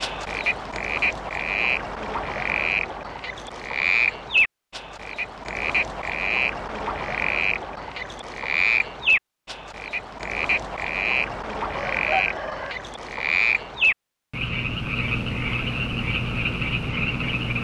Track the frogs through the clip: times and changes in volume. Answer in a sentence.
You can hear the frogs from 0.0 to 17.5 s, at a steady volume.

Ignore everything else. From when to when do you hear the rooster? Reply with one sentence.
The rooster can be heard from 11.2 to 12.8 s.